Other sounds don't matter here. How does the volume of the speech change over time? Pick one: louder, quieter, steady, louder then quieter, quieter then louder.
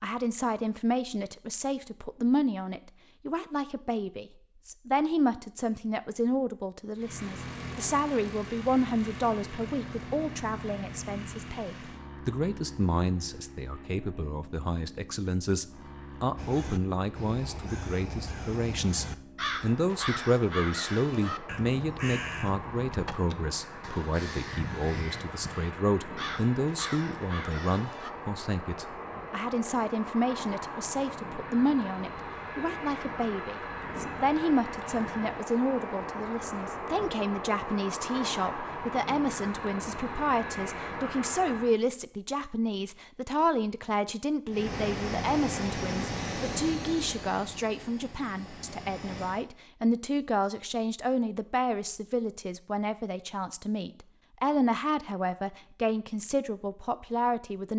steady.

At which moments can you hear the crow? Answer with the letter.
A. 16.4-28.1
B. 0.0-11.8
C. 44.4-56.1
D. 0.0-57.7
A.